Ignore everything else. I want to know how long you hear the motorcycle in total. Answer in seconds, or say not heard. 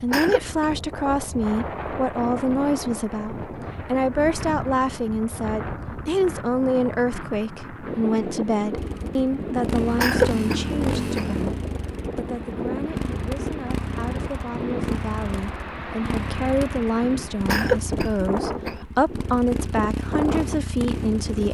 13 s.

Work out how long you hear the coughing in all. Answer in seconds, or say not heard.
3 s.